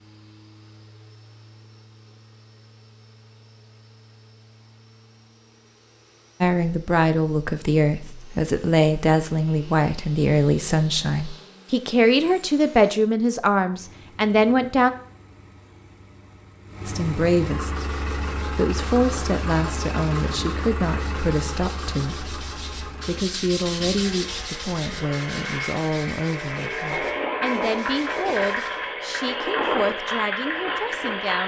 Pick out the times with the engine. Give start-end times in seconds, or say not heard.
0.0-31.4.